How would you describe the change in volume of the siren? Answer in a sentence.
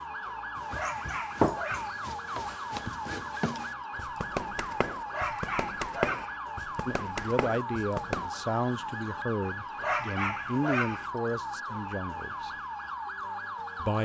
The loudness of the siren stays about the same.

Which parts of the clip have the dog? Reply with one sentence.
The dog can be heard from 0.7 to 2.0 s, from 5.1 to 6.4 s and from 9.8 to 11.1 s.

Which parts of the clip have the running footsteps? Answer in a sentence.
You can hear the running footsteps from 0.6 to 8.3 s.